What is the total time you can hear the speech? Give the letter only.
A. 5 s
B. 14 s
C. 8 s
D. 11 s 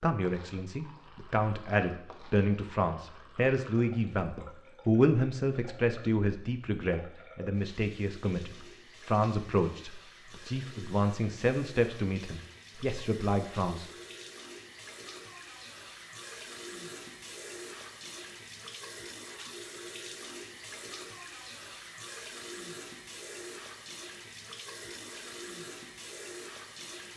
B.